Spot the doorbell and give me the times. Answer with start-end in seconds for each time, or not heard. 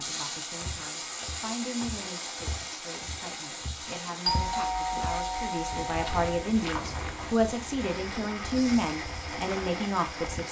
4.2-6.5.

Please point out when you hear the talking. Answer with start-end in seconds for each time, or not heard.
0.0-10.4.